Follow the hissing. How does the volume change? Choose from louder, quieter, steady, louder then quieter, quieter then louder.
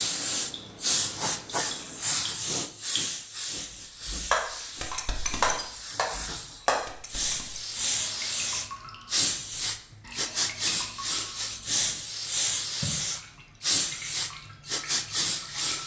quieter then louder.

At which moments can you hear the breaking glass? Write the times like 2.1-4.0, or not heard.
4.3-6.9.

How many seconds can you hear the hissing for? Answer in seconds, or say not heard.
16 s.